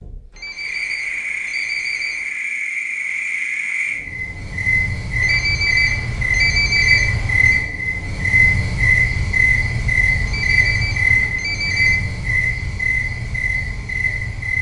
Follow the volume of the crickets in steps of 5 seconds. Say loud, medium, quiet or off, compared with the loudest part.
medium, loud, loud.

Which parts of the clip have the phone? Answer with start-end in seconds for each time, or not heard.
0.3-2.2, 5.2-7.6, 10.2-12.0.